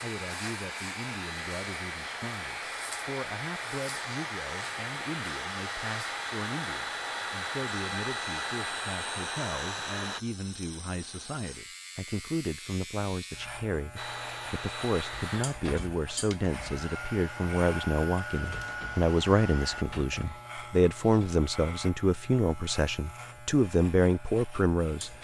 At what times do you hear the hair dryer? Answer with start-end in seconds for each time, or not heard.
0.0-10.2, 13.9-19.9.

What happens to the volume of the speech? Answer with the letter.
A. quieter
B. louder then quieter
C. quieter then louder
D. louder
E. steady
D.